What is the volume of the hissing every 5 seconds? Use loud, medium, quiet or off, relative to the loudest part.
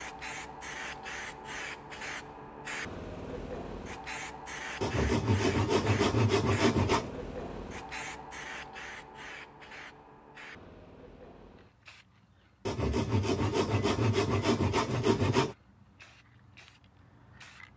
loud, loud, quiet, quiet.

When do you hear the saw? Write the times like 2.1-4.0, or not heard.
4.8-7.1, 12.7-15.6.